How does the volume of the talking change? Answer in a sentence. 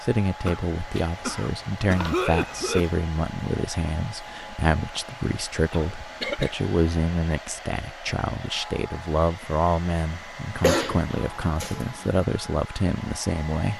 The loudness of the talking stays about the same.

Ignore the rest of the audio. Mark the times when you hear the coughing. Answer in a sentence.
You can hear the coughing from 0.5 to 3.0 s, from 5.7 to 6.5 s and from 10.6 to 12.2 s.